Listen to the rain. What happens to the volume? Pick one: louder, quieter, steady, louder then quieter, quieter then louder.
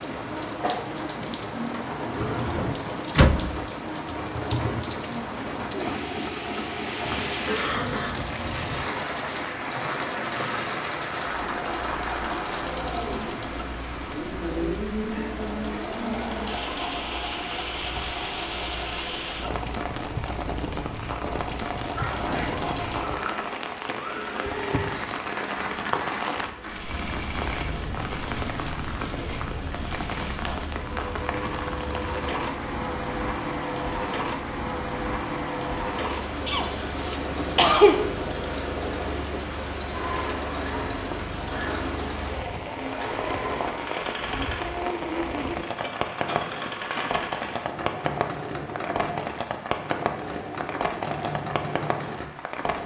steady.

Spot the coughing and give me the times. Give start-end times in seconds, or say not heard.
7.0-8.2, 21.9-22.6, 36.5-38.0.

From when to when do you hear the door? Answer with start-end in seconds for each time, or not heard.
2.5-3.6.